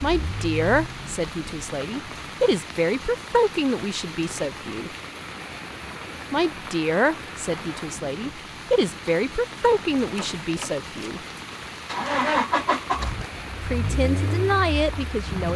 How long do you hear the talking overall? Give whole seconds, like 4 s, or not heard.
12 s.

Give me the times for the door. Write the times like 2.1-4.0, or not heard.
10.2-11.2.